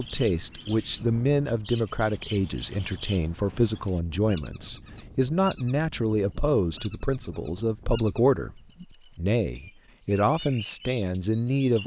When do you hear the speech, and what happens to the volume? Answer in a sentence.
The speech can be heard from 0.0 to 11.8 s, at a steady volume.